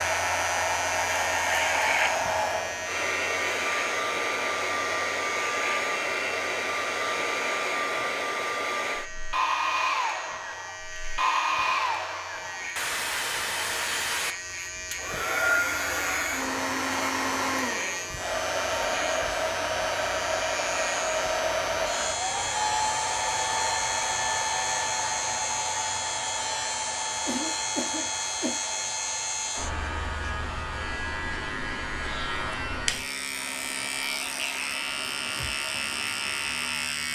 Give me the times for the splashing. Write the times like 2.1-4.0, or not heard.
not heard.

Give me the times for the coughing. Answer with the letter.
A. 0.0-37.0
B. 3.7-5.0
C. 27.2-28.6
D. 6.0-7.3
C.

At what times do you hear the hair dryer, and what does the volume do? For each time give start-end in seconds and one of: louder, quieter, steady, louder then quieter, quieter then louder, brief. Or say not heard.
0.0-37.0 quieter.